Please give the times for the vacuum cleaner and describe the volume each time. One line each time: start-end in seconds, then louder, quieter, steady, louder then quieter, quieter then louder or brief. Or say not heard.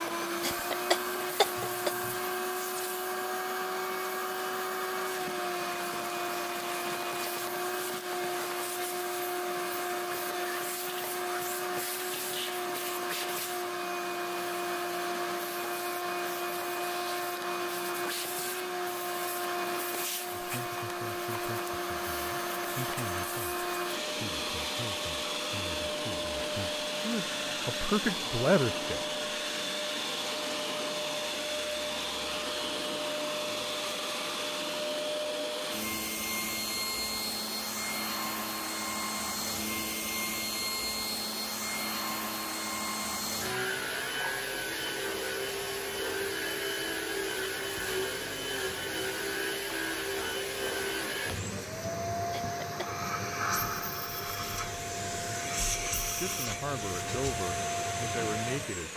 0.0-58.9 steady.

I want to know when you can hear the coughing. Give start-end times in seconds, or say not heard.
0.4-2.4, 52.3-52.9.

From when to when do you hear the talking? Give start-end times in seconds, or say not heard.
20.3-29.1, 56.1-58.9.